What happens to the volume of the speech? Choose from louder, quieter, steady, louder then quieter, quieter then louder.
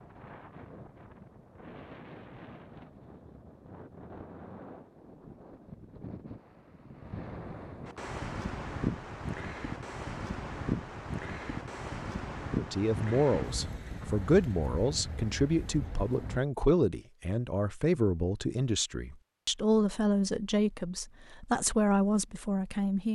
steady.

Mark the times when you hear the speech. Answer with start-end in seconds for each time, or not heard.
12.6-23.0.